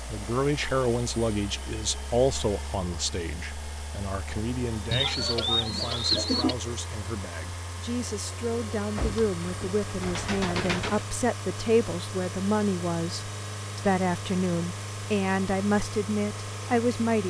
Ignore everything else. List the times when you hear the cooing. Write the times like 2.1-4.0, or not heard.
4.9-6.5, 8.9-11.1.